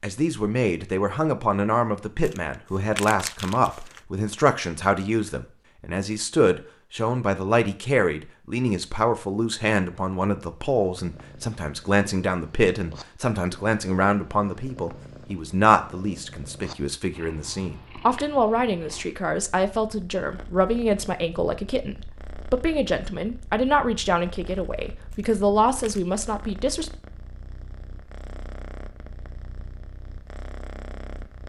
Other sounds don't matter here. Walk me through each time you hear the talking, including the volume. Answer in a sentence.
The talking can be heard from 0.0 to 26.9 s, at a steady volume.